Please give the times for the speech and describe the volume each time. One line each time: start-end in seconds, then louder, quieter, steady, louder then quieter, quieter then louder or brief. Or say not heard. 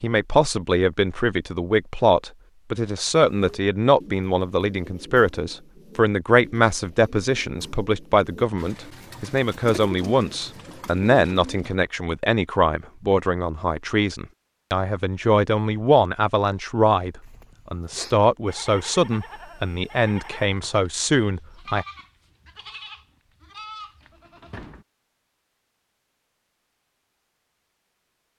0.0-21.9 steady.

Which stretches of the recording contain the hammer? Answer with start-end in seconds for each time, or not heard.
not heard.